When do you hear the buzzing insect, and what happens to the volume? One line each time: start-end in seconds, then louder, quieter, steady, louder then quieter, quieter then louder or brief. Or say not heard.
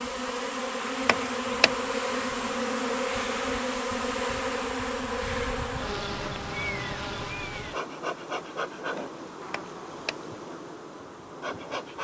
0.0-11.9 quieter.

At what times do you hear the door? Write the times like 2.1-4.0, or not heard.
1.1-1.8, 9.5-10.2.